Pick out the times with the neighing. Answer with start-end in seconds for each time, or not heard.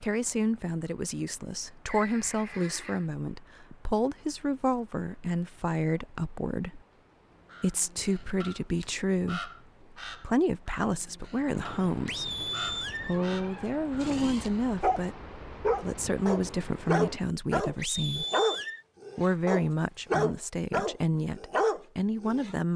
1.9-3.0, 12.1-13.2, 17.8-18.9.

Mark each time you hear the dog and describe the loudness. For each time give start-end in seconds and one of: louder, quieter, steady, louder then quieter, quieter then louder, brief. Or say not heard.
14.0-22.6 steady.